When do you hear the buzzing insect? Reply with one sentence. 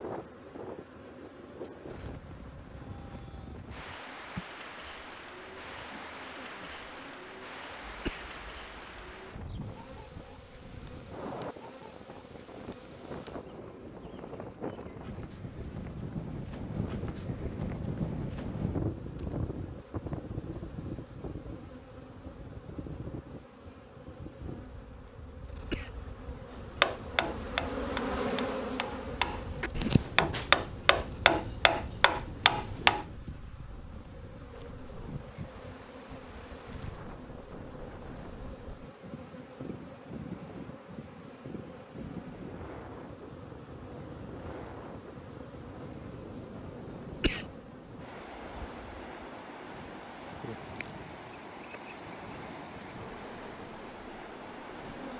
You can hear the buzzing insect from 0.0 to 55.1 s.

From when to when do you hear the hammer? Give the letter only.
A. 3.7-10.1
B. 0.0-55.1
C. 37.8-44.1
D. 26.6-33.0
D.